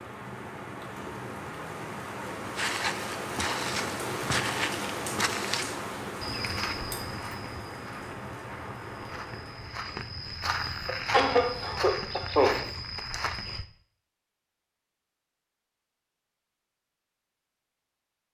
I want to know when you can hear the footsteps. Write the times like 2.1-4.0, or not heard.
2.5-13.7.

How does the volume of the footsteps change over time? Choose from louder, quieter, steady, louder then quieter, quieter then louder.
quieter then louder.